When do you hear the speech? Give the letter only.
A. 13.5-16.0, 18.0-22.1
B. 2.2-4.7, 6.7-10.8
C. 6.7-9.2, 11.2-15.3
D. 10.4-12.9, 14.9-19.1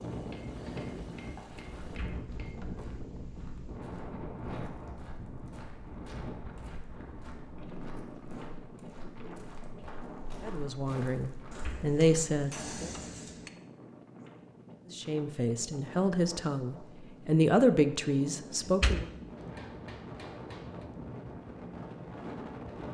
D.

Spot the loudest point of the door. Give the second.
19 s.